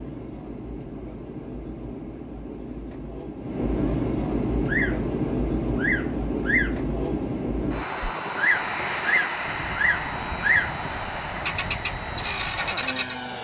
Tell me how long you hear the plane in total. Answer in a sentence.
The plane can be heard for 13 seconds in total.